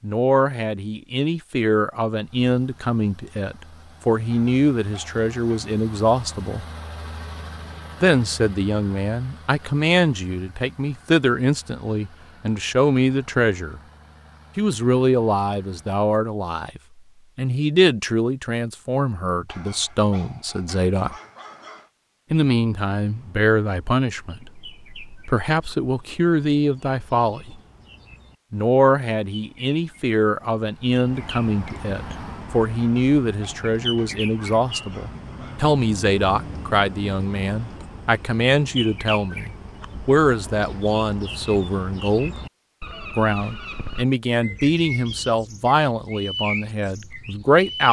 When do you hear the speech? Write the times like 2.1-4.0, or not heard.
0.0-6.7, 8.0-13.8, 14.6-21.1, 22.3-27.6, 28.5-42.4, 43.1-47.8.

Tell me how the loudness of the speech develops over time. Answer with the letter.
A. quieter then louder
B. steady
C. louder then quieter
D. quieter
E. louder
B.